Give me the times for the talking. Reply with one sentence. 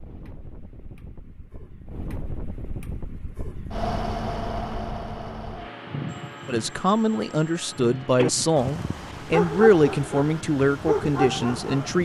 The talking can be heard from 6.5 to 12.0 s.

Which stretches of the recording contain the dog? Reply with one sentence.
The dog can be heard from 8.2 to 12.0 s.